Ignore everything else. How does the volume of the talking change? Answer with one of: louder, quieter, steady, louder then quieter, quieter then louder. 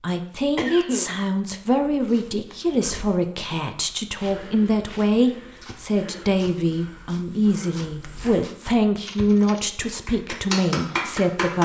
steady.